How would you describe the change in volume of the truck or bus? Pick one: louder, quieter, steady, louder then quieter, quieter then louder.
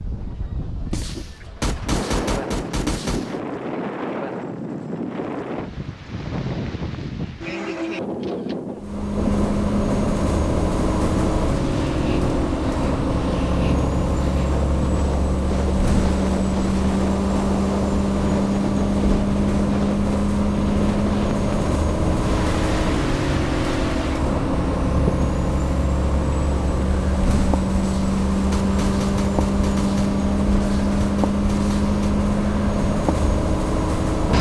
steady.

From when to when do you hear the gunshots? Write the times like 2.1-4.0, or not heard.
0.9-3.4, 27.8-32.1.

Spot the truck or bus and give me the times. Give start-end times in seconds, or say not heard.
8.8-34.3.